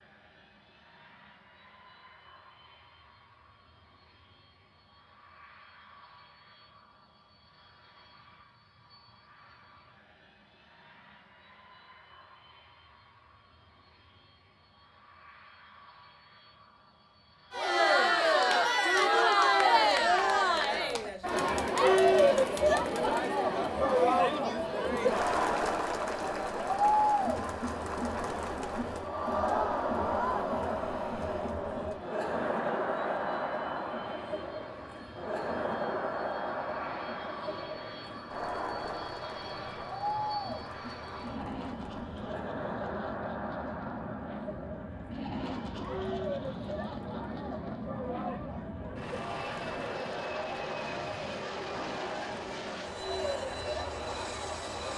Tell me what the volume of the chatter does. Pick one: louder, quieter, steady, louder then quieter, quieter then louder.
quieter.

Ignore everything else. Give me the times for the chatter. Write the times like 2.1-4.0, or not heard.
17.5-54.9.